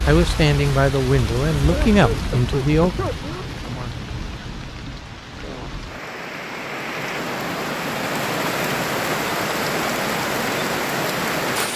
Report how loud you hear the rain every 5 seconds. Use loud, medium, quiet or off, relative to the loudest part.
medium, loud, loud.